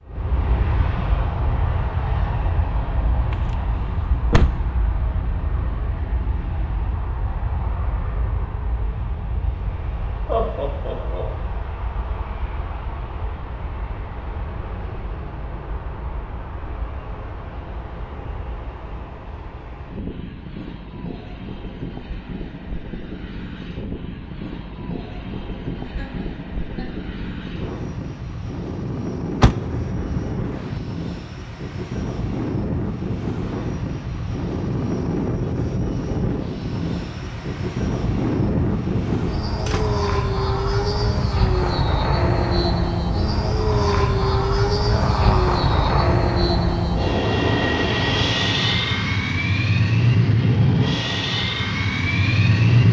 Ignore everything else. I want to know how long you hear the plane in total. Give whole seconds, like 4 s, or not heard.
53 s.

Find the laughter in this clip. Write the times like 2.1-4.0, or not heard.
10.2-11.2, 25.8-27.0, 44.9-46.1.